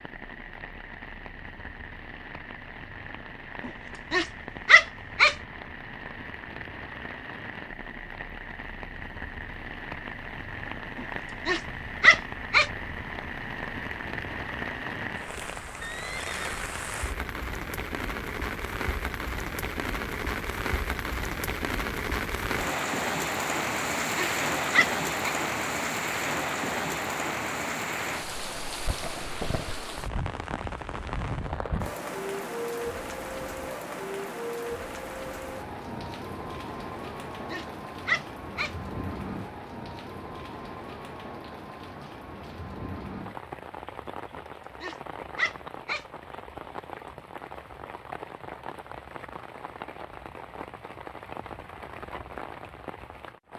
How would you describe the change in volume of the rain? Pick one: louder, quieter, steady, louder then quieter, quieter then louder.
louder then quieter.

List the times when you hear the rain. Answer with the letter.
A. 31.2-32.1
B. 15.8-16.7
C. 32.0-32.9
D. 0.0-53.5
D.